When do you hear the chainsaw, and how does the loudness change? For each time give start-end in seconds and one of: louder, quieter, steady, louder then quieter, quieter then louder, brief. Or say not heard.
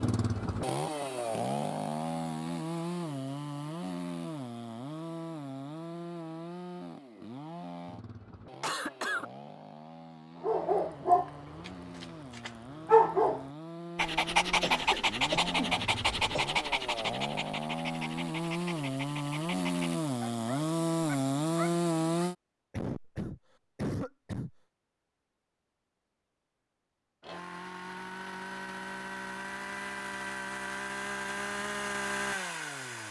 0.0-22.4 quieter then louder
27.2-33.0 louder.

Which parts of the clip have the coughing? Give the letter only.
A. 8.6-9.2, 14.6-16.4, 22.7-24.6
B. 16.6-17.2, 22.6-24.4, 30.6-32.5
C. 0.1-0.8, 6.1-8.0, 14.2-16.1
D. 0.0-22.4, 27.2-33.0
A.